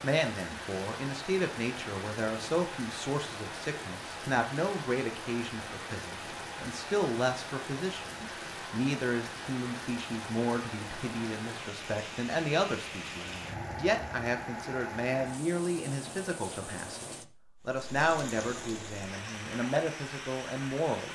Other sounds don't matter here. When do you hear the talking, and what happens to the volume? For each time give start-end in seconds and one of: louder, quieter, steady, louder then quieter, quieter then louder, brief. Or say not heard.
0.0-21.1 steady.